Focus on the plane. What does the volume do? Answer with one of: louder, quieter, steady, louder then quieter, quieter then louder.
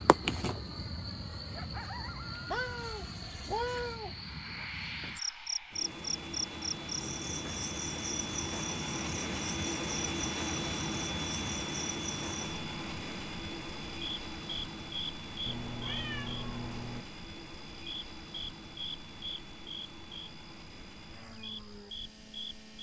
louder then quieter.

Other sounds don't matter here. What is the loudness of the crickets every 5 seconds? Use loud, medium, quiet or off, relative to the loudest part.
loud, loud, loud, medium, medium.